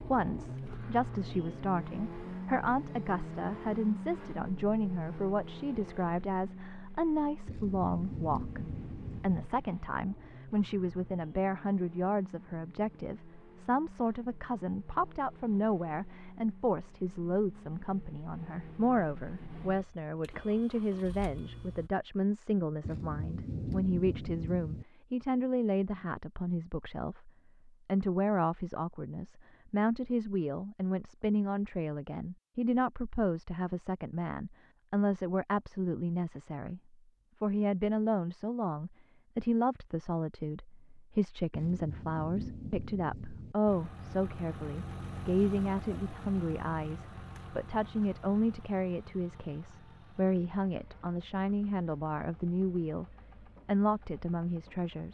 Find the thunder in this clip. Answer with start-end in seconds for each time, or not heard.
7.5-9.5, 22.8-24.9, 41.5-43.5.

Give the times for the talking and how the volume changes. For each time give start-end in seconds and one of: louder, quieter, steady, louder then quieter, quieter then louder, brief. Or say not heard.
0.0-36.8 steady
37.4-53.0 steady
53.6-55.0 brief.